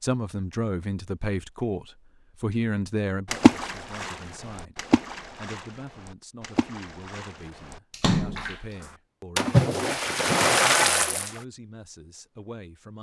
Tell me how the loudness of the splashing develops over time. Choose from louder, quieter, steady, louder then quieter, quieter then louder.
quieter then louder.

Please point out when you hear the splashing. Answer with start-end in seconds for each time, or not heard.
3.3-11.3.